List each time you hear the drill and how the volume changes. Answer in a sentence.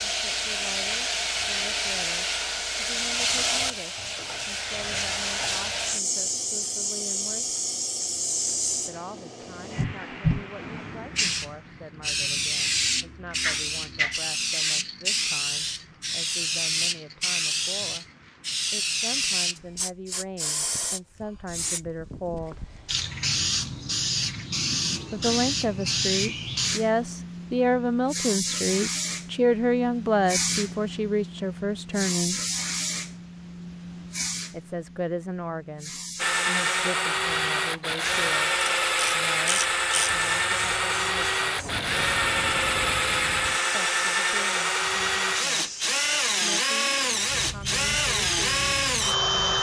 You can hear the drill from 36.1 to 49.5 s, at a steady volume.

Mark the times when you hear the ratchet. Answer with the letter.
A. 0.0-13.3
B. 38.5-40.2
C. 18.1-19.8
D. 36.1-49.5
B.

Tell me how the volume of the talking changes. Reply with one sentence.
The loudness of the talking goes up, then down.